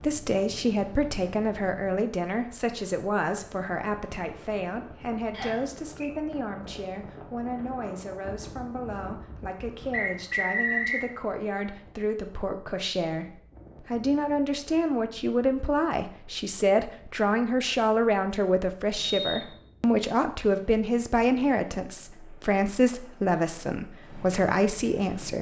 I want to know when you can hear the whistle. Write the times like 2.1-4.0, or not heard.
5.3-6.1, 9.9-11.1, 18.9-19.6.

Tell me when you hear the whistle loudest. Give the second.
11 s.